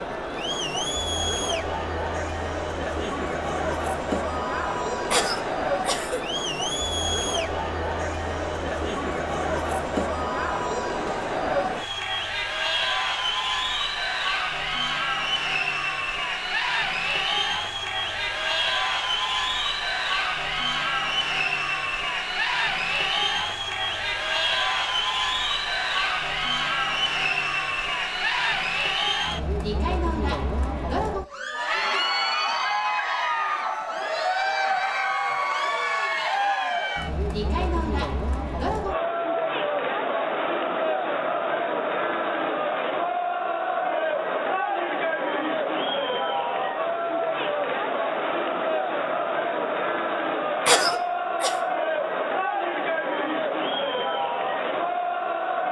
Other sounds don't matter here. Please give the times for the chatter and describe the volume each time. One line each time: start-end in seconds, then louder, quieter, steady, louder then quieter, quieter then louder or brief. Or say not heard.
0.0-55.6 steady.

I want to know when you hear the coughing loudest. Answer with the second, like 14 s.
51 s.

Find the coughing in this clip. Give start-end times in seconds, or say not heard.
5.1-6.2, 50.6-51.5.